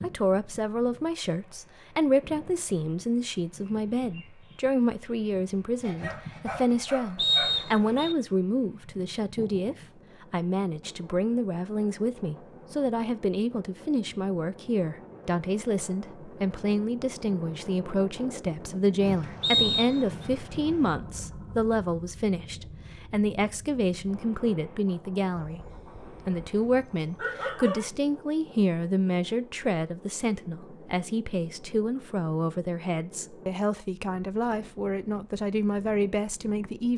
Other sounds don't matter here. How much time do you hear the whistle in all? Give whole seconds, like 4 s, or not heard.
2 s.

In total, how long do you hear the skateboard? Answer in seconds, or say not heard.
not heard.